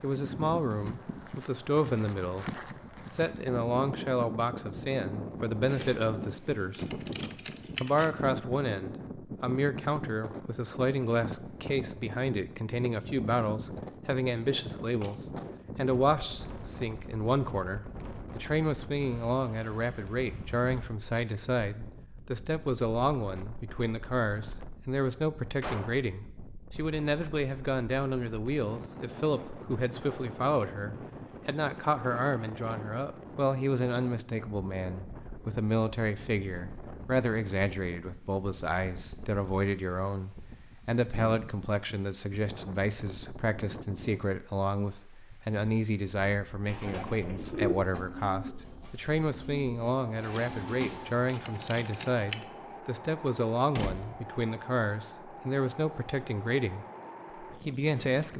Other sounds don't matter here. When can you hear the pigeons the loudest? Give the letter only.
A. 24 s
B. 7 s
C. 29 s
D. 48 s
D.